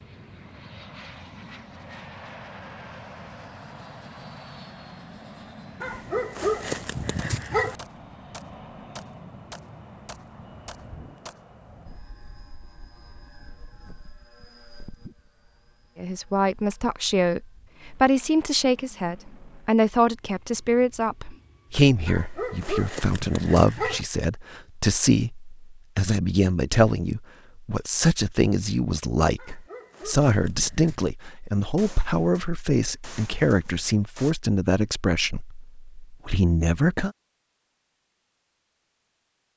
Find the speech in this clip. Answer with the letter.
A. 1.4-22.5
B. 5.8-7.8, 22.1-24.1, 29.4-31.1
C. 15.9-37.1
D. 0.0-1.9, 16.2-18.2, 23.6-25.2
C.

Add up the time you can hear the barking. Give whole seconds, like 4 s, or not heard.
6 s.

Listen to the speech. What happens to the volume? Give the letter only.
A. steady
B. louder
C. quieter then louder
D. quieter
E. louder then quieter
A.